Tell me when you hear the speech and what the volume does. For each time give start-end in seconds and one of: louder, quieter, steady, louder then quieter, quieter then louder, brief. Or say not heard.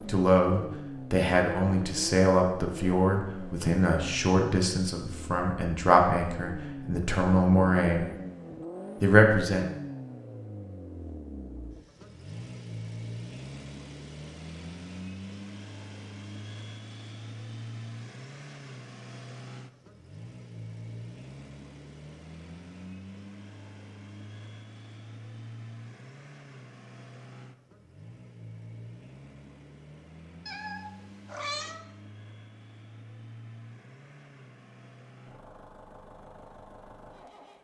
0.1-8.1 steady
9.0-9.7 brief.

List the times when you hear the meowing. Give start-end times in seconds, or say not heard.
30.4-31.9.